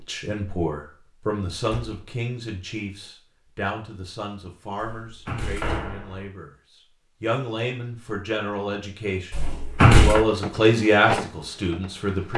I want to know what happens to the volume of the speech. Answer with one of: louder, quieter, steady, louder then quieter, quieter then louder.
quieter then louder.